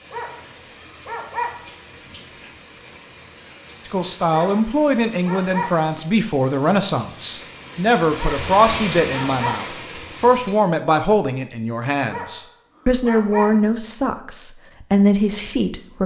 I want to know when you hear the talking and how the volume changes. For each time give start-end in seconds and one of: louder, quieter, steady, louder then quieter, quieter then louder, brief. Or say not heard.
3.9-16.0 steady.